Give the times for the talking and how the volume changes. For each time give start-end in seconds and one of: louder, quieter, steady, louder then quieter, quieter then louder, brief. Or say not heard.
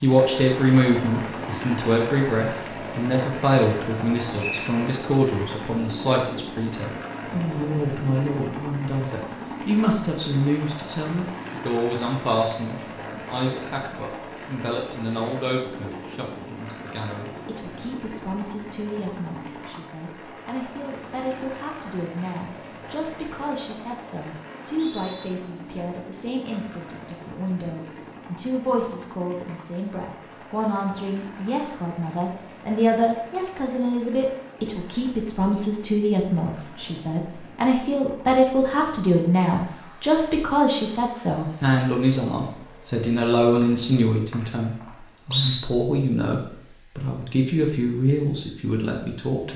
0.0-49.5 quieter then louder.